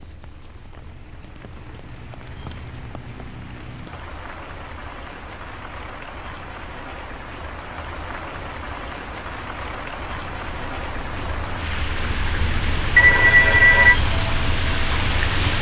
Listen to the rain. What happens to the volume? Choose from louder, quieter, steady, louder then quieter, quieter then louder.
louder.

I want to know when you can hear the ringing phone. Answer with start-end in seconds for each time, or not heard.
12.9-14.0.